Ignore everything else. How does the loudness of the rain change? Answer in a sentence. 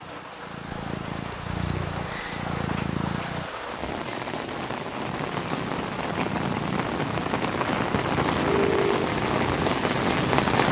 The loudness of the rain goes up.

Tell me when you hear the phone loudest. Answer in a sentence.
The volume of the phone peaks at 9 seconds.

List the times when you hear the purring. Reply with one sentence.
The purring can be heard from 0.0 to 3.5 s and from 5.0 to 10.6 s.